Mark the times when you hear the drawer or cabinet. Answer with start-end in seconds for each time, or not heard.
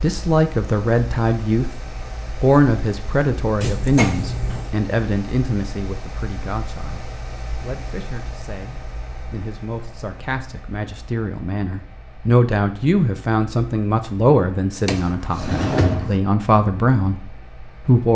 3.6-4.8, 14.8-16.2.